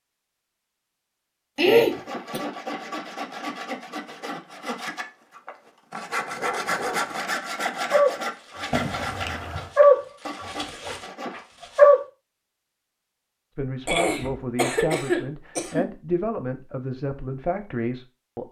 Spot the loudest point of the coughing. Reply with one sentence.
The loudest moment of the coughing is at 2 seconds.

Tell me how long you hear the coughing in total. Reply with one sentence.
You can hear the coughing for 4 seconds altogether.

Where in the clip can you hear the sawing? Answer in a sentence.
The sawing can be heard from 1.8 to 11.4 s.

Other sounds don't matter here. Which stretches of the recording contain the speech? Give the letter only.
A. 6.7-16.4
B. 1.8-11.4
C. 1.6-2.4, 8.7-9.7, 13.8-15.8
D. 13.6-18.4
D.